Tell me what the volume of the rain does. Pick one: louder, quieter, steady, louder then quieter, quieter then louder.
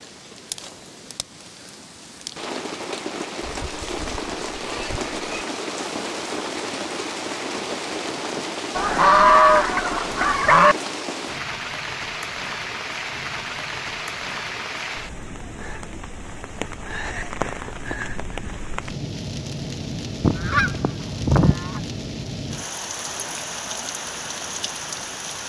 steady.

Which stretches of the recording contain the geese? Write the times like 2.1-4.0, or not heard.
3.4-5.5, 8.8-10.8, 20.2-21.8.